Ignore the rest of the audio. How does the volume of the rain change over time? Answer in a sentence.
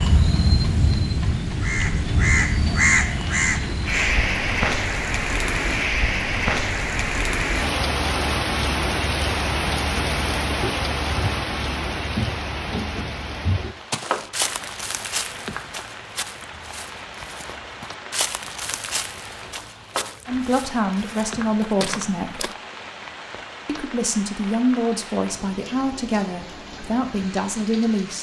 The loudness of the rain goes down.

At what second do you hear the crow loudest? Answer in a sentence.
The volume of the crow peaks at 3 seconds.